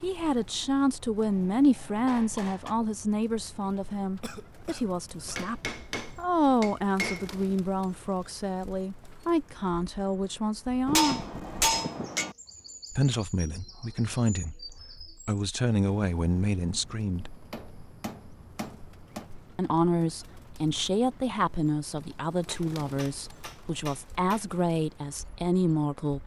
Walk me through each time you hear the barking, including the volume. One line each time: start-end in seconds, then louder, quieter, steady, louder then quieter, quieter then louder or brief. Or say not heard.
not heard.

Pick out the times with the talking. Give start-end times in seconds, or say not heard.
0.0-11.2, 12.9-17.4, 19.6-26.2.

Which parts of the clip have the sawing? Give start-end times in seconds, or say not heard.
not heard.